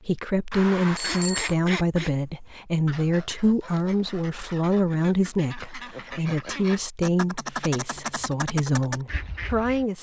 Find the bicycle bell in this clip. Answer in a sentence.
You can hear the bicycle bell from 0.5 to 1.6 s.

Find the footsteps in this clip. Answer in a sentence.
The footsteps can't be heard in this clip.